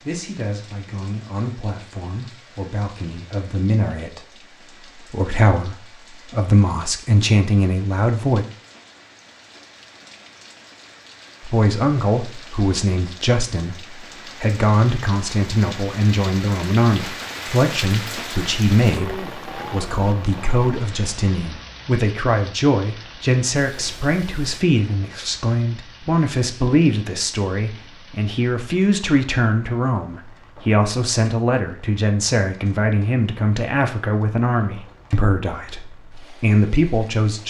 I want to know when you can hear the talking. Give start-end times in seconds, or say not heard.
0.0-8.4, 11.4-37.4.